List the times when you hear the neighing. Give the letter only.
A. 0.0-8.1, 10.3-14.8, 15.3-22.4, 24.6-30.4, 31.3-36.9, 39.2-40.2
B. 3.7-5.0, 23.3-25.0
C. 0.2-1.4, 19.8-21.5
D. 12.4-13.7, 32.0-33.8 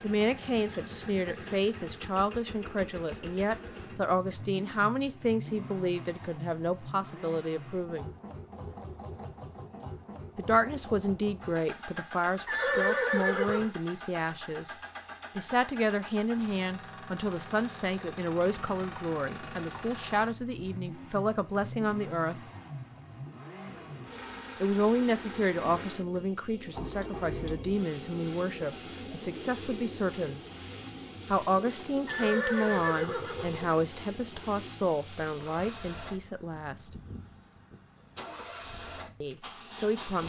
D.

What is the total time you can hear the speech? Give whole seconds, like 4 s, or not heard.
32 s.